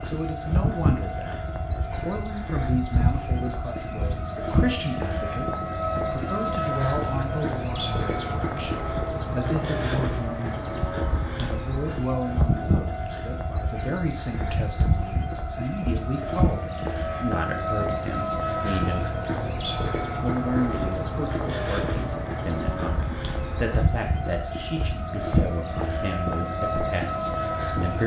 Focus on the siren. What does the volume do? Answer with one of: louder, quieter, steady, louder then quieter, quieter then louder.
steady.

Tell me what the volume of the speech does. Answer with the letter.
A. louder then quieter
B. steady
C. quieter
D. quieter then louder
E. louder
B.